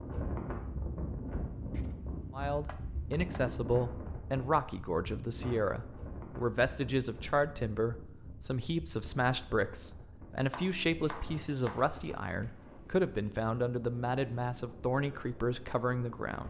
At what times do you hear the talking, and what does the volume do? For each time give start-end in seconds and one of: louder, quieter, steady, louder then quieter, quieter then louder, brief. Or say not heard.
2.3-16.4 steady.